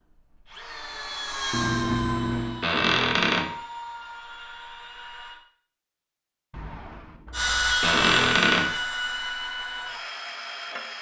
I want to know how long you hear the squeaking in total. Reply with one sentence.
You can hear the squeaking for 2 seconds altogether.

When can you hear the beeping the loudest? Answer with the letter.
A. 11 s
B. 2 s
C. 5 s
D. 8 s
B.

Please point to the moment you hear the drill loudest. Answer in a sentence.
The loudest moment of the drill is at 8 seconds.